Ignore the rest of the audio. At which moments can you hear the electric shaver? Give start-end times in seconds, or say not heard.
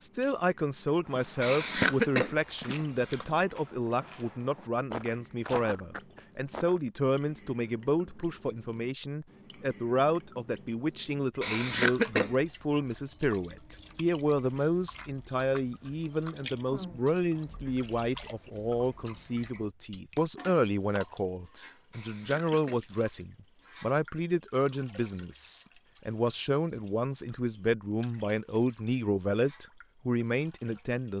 not heard.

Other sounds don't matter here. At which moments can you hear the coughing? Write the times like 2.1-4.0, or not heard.
1.4-3.2, 11.4-12.3, 21.9-22.9.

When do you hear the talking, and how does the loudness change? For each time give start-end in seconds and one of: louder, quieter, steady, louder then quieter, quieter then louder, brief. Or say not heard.
0.0-31.1 steady.